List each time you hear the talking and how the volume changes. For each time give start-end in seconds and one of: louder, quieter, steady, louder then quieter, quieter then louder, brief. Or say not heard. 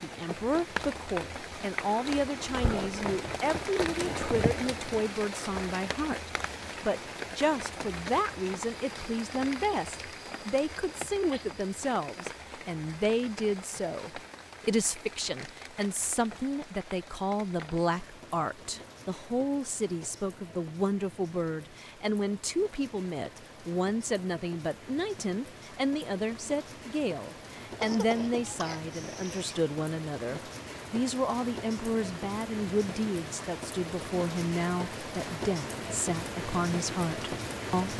0.0-37.9 steady.